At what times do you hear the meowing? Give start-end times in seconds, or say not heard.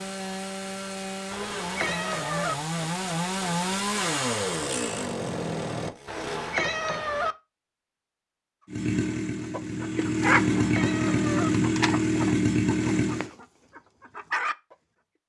1.3-2.5, 6.0-7.3, 10.3-11.5.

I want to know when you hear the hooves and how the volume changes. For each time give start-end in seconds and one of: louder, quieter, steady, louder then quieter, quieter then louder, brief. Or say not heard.
not heard.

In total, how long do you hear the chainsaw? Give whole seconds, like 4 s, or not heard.
11 s.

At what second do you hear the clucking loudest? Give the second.
10 s.